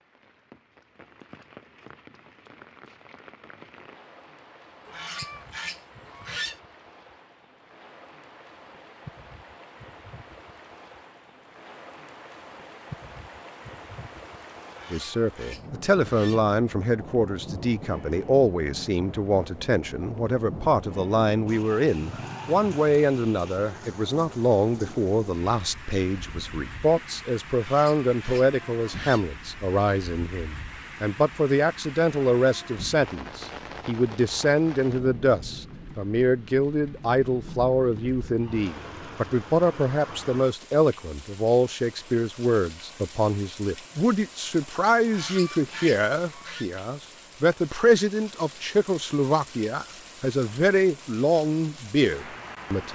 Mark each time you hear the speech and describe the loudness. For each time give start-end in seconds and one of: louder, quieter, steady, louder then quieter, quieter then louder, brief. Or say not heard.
14.9-52.8 steady.